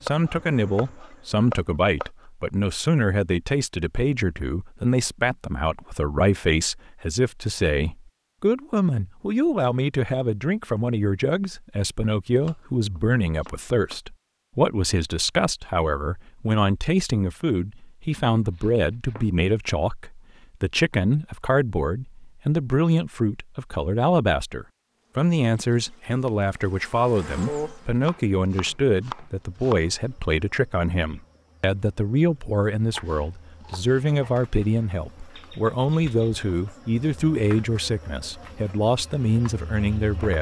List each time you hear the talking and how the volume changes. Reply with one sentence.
The talking can be heard from 0.0 to 40.3 s, at a steady volume.